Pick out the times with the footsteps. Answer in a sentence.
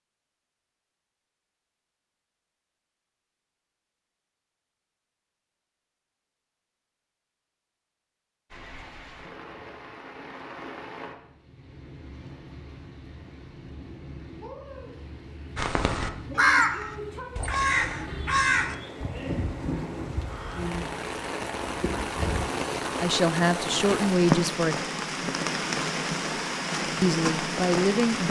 The footsteps can't be heard in this clip.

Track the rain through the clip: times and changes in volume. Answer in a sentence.
The rain can be heard from 8.5 to 28.2 s, getting louder.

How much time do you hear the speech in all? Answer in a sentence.
You can hear the speech for 3 seconds altogether.